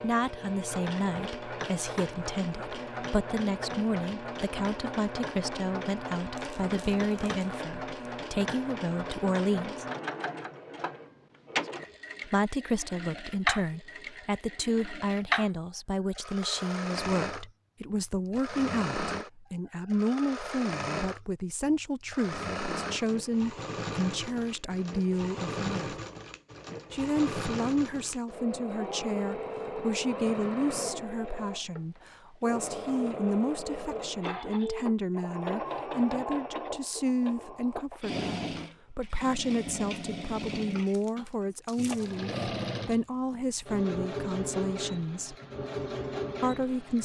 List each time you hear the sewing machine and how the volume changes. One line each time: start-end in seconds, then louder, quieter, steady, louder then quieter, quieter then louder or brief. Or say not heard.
0.0-47.0 steady.